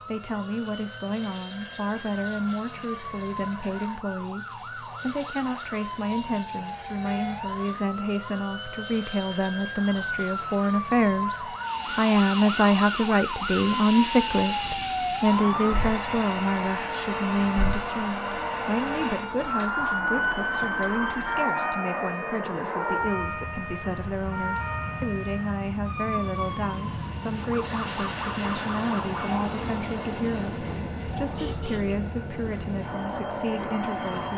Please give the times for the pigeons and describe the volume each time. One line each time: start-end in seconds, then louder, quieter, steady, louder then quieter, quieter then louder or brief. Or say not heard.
not heard.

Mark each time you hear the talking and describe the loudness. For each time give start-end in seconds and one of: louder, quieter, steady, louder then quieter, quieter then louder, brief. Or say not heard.
0.1-34.3 louder then quieter.